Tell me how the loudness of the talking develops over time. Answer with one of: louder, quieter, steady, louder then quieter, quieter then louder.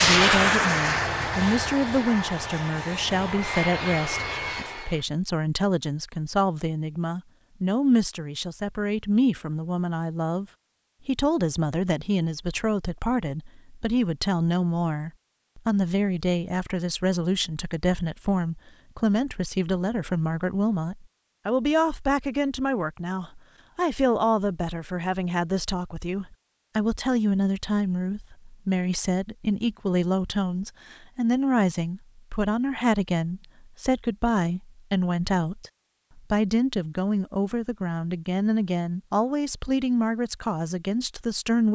steady.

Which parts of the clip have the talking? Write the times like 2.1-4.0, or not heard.
0.0-10.4, 11.1-41.7.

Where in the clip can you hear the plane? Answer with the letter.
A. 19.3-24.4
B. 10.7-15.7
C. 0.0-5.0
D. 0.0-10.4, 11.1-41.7
C.